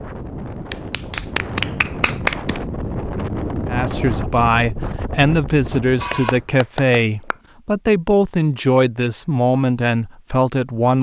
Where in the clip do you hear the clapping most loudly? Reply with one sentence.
The loudest moment of the clapping is at 2 seconds.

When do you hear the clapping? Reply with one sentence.
You can hear the clapping from 0.7 to 2.6 s and from 6.0 to 7.3 s.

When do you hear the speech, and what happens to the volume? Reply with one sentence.
You can hear the speech from 3.6 to 10.9 s, at a steady volume.